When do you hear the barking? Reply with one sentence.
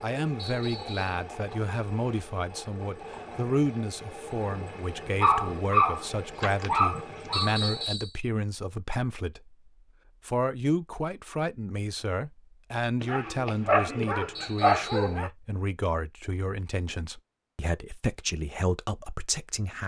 You can hear the barking from 5.2 to 7.5 s and from 13.0 to 15.3 s.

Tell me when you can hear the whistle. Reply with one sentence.
You can hear the whistle from 0.3 to 1.2 s, from 7.3 to 8.2 s and from 14.3 to 15.2 s.